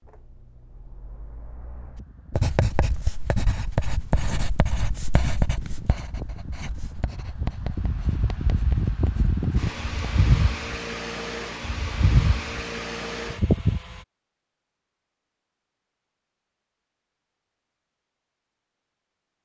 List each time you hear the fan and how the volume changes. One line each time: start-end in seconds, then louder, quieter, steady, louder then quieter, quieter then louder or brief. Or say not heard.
0.0-14.0 louder.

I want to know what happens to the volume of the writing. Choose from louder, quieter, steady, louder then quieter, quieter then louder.
quieter.